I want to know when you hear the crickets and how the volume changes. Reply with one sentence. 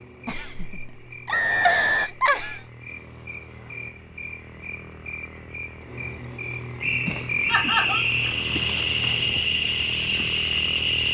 You can hear the crickets from 0.0 to 11.0 s, getting louder.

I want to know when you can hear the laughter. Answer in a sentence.
You can hear the laughter from 0.2 to 2.6 s and from 7.0 to 8.1 s.